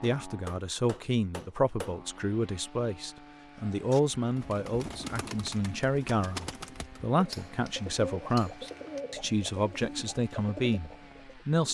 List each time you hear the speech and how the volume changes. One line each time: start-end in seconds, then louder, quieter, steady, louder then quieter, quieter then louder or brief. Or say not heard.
0.0-11.6 steady.